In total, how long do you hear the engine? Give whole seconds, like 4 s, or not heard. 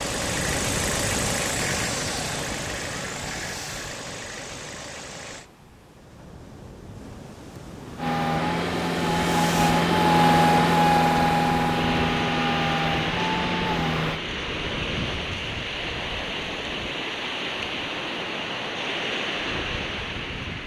12 s.